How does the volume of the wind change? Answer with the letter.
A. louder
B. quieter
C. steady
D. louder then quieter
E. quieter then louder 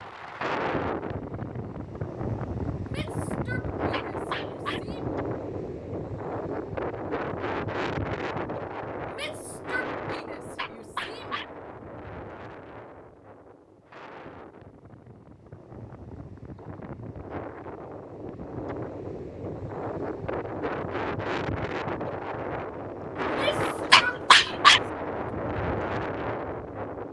E.